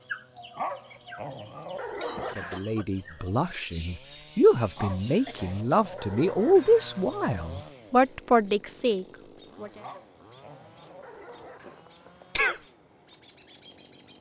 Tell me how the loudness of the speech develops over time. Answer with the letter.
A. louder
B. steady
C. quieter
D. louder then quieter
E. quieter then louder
A.